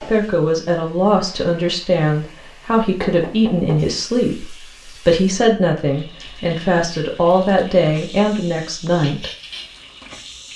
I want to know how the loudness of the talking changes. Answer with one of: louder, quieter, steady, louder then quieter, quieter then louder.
steady.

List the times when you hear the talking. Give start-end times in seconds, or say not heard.
0.0-9.3.